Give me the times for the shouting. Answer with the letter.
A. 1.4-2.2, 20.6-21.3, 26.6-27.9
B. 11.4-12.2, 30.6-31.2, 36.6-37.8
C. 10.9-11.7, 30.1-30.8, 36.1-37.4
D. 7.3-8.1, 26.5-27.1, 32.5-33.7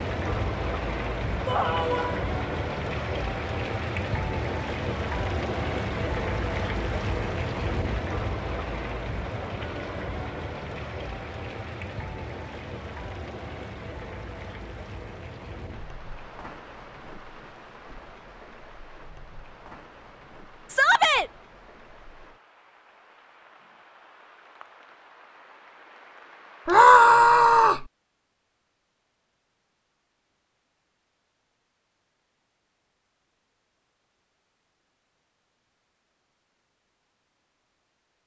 A.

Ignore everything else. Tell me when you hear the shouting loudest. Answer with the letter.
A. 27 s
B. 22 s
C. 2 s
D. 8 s
A.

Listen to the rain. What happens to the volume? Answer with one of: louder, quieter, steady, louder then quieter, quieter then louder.
quieter.